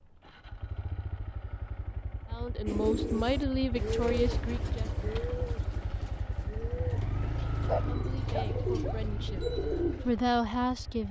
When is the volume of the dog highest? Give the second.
8 s.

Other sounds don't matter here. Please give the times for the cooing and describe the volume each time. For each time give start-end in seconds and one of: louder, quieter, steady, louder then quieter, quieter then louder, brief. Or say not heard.
2.6-10.2 quieter then louder.